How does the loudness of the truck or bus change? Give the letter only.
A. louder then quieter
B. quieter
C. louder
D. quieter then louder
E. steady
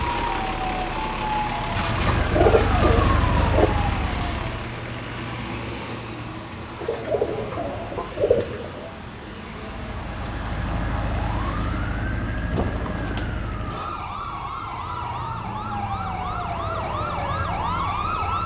B.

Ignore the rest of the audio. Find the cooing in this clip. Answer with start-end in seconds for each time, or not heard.
1.8-3.7, 6.8-8.9, 12.5-14.0.